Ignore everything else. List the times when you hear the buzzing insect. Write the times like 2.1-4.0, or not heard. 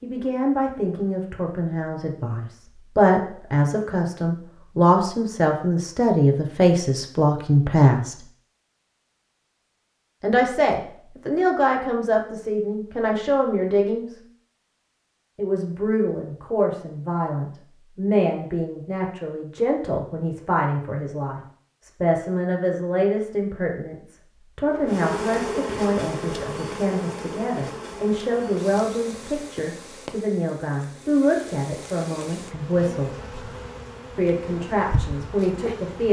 24.6-36.0.